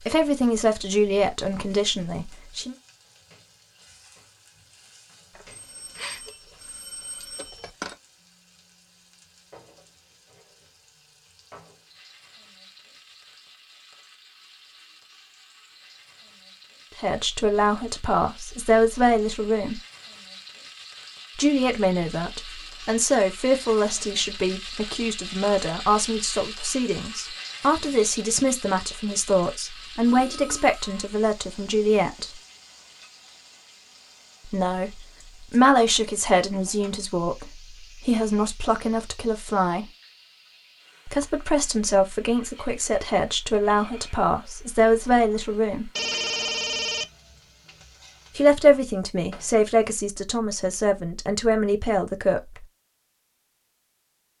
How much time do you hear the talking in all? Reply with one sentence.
The talking can be heard for 31 seconds in total.